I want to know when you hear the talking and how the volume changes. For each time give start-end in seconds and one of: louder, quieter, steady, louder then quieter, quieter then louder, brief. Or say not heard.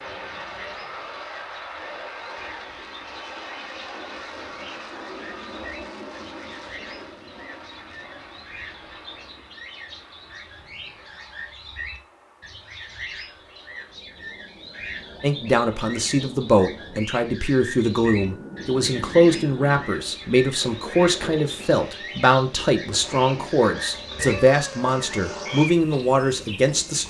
15.2-27.0 steady.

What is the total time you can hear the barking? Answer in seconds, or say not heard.
not heard.